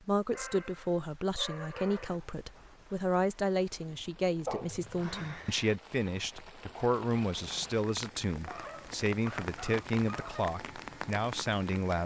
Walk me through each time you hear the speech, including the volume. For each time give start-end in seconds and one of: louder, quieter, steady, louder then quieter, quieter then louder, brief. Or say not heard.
0.1-12.0 steady.